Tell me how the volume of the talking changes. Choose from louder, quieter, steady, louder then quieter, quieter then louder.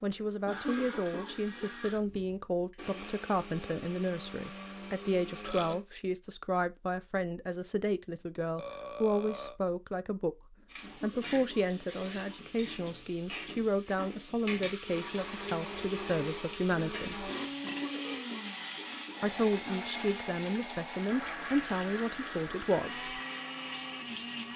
steady.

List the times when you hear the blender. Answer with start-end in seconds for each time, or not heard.
0.1-5.8, 14.8-24.5.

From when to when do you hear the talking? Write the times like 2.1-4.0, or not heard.
0.0-17.3, 19.2-23.2.